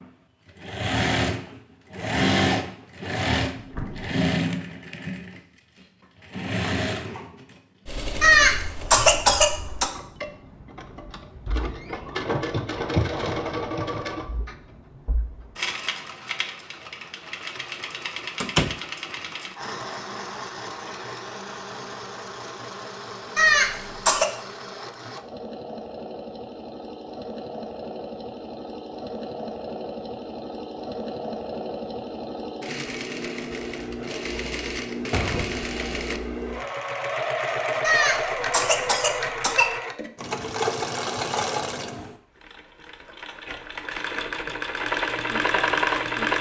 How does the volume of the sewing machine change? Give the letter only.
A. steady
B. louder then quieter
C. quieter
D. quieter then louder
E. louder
D.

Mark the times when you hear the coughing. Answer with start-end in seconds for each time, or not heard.
8.2-9.9, 23.4-24.2, 37.8-39.7.